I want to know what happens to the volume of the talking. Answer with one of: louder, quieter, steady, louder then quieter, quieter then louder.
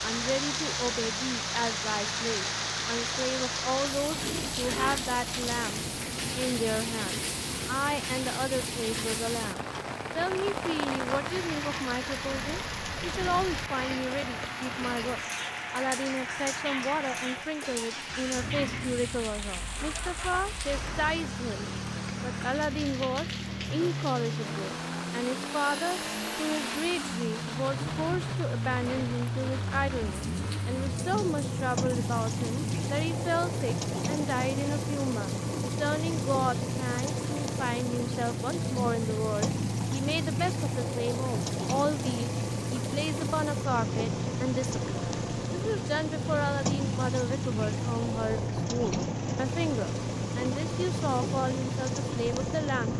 steady.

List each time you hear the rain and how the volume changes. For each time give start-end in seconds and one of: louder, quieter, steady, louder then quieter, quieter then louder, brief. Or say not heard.
0.0-52.9 quieter.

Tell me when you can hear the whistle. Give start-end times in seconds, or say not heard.
not heard.